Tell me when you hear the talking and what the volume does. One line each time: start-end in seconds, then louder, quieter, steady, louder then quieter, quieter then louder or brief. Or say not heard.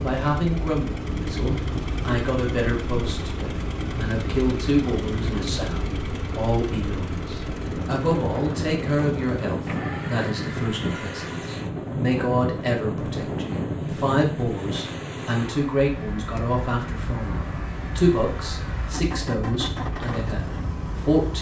0.0-21.3 steady.